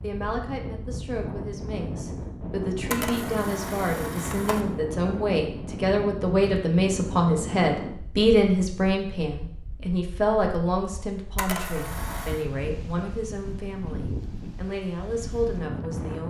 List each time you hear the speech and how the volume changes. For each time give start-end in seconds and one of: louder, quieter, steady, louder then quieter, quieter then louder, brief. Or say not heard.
0.0-16.2 louder then quieter.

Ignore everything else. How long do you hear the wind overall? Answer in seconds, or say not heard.
16 s.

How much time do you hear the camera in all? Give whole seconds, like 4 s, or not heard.
3 s.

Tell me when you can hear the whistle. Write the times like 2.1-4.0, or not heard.
not heard.